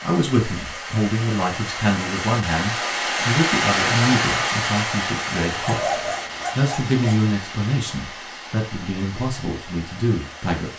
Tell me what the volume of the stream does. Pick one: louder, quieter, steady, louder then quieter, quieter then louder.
louder then quieter.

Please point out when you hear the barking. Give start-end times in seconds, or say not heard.
5.6-7.2.